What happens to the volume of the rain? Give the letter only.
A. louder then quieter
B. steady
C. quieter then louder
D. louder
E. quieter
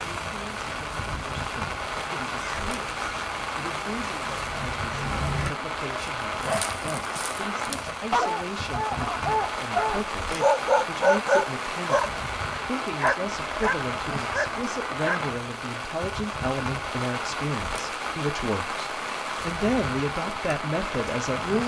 B.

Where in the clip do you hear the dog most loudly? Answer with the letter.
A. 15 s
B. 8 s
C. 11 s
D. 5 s
C.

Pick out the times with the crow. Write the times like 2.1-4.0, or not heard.
0.0-5.5.